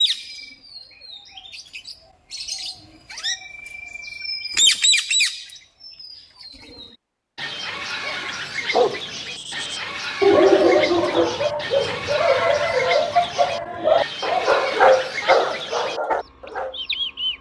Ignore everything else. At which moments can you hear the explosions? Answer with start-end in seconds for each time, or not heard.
not heard.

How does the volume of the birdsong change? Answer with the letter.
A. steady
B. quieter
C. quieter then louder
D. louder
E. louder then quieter
E.